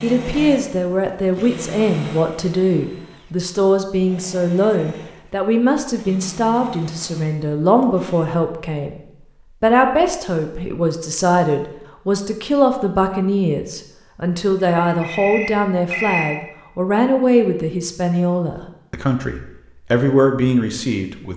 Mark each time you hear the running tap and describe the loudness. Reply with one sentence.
You can't hear the running tap here.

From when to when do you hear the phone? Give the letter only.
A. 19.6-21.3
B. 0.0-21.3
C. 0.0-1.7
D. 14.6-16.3
D.